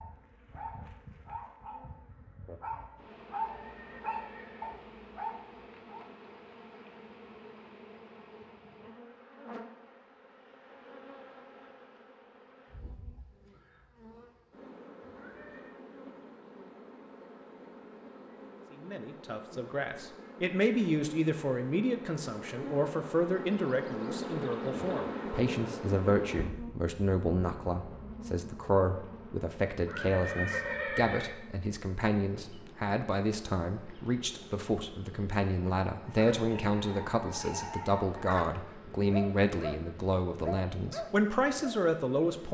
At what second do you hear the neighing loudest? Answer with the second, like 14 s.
31 s.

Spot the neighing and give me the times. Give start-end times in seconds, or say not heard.
3.4-4.8, 15.0-15.8, 29.8-31.4.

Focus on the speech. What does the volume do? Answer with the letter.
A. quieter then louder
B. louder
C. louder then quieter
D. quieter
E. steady
E.